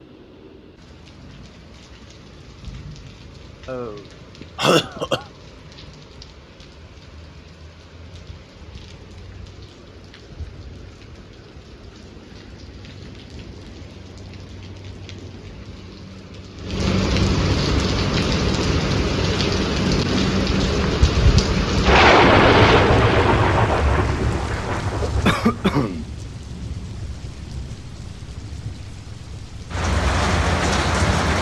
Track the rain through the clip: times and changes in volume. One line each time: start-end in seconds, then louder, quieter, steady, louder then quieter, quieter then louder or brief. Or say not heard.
0.0-31.3 louder then quieter.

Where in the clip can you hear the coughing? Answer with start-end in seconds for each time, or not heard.
3.6-5.2, 25.2-26.1.